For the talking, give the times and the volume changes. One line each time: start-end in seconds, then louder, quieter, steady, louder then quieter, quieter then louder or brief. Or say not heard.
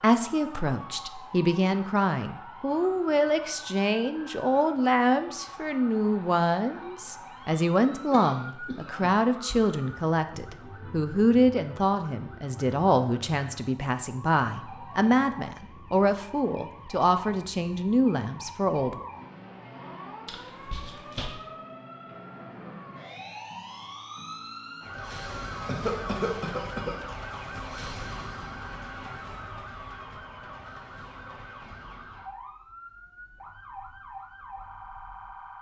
0.0-19.1 steady.